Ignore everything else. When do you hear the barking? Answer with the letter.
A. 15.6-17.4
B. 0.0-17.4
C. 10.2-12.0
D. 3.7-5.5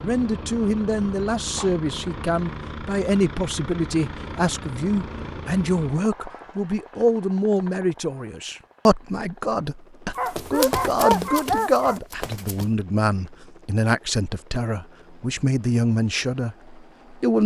C.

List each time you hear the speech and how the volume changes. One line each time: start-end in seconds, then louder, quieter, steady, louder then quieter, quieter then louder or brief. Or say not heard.
0.0-17.4 steady.